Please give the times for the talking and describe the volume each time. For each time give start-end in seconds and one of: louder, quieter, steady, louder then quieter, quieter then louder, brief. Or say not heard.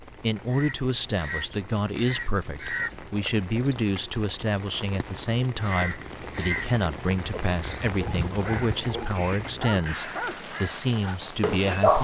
0.2-11.9 steady.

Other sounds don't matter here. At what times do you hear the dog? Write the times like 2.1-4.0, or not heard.
8.0-11.9.